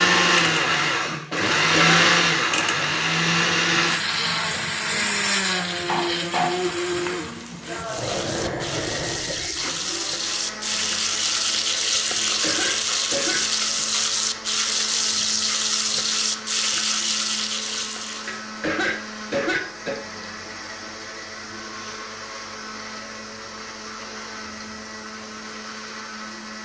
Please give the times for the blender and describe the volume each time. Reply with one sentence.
You can hear the blender from 0.0 to 26.6 s, getting quieter.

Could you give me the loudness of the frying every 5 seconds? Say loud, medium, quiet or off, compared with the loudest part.
quiet, medium, loud, loud, off, off.